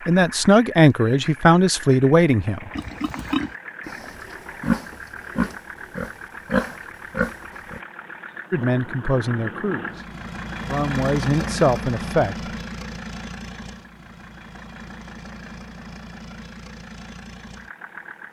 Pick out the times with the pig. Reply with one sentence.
You can hear the pig from 2.8 to 7.8 s.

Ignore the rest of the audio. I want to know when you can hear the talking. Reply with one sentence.
The talking can be heard from 0.1 to 2.7 s and from 8.5 to 12.3 s.